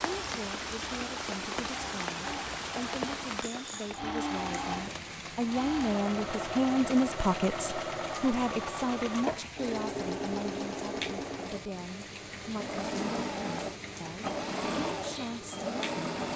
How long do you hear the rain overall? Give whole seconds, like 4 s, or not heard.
16 s.